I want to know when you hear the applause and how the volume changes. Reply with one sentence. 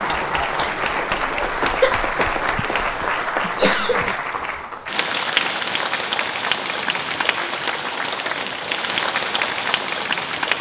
The applause can be heard from 0.0 to 10.5 s, at a steady volume.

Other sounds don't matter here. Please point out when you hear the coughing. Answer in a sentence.
The coughing can be heard from 1.6 to 4.2 s.